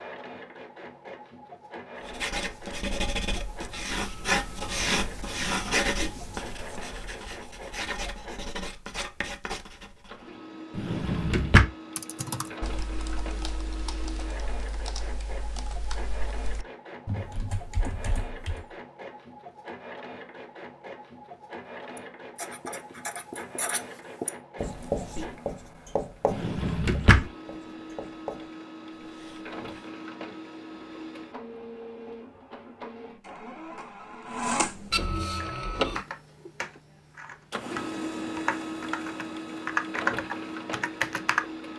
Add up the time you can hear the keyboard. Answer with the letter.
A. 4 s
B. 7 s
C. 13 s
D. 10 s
C.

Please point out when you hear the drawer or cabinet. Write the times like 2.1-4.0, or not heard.
10.8-11.7, 26.2-27.2.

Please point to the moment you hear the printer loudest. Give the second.
35 s.